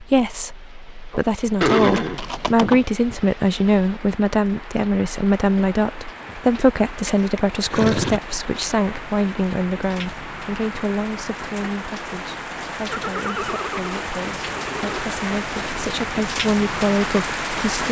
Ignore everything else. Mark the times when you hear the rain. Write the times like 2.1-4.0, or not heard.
0.0-17.8.